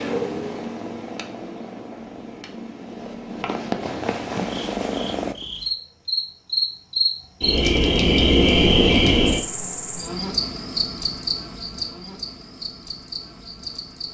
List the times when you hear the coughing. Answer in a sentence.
The coughing can't be heard in this clip.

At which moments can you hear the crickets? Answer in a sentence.
You can hear the crickets from 4.3 to 14.0 s.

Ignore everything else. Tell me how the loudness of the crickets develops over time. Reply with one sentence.
The loudness of the crickets goes up, then down.